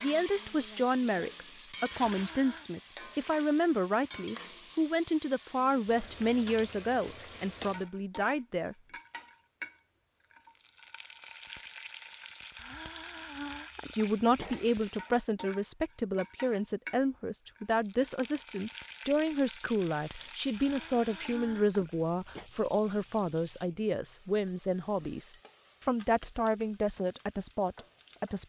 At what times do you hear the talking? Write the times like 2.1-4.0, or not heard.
0.0-8.8, 13.9-28.4.